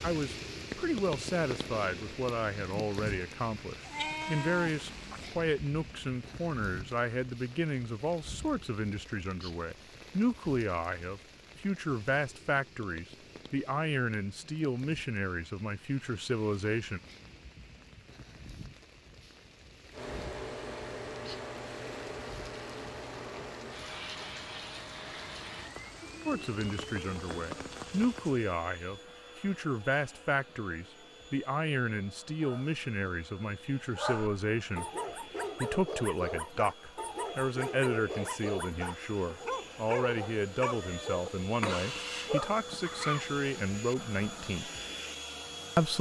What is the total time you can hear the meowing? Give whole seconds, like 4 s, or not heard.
3 s.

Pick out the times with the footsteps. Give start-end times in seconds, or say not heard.
not heard.